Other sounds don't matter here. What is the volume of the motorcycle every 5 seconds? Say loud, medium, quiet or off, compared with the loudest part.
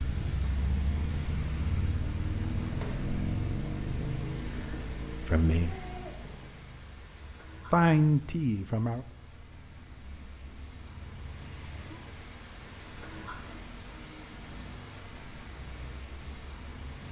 loud, quiet, quiet, quiet.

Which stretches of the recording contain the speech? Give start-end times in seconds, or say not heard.
5.2-5.8, 7.7-9.1.